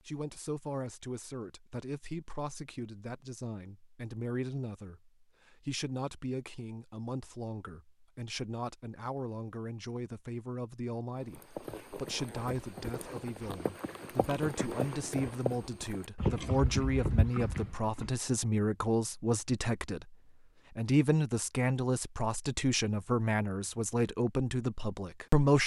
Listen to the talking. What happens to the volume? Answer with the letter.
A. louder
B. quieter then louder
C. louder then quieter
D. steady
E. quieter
A.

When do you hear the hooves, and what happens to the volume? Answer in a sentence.
You can hear the hooves from 11.2 to 18.1 s, getting louder.